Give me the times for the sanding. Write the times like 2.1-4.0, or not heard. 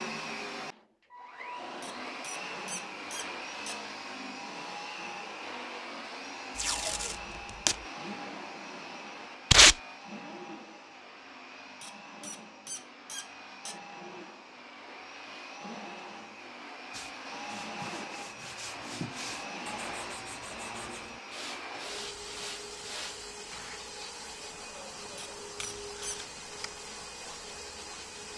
16.9-23.8.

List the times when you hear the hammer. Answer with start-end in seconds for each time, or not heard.
not heard.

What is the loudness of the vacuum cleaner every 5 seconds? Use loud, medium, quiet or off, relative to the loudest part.
loud, loud, medium, loud, loud, loud.